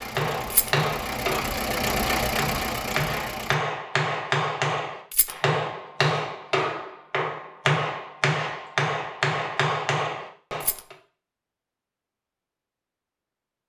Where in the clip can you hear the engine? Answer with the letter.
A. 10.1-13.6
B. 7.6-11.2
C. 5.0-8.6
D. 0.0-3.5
D.